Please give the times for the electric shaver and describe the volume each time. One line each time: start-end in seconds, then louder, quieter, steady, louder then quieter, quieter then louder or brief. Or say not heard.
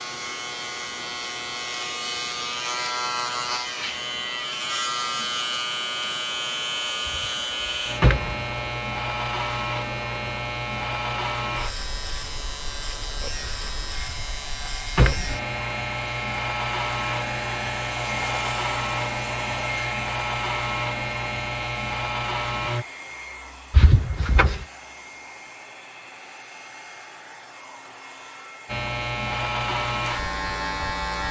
0.0-22.9 steady
28.6-31.2 brief.